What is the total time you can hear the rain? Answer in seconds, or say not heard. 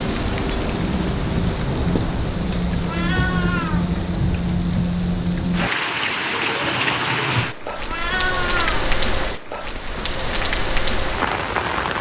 12 s.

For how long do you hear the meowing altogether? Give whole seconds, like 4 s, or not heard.
2 s.